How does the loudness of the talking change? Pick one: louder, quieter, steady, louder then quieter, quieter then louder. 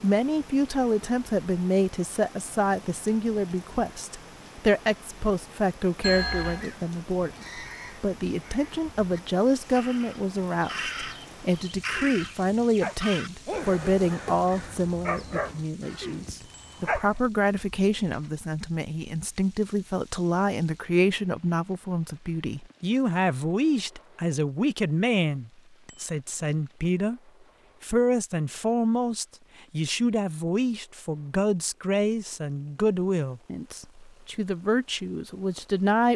steady.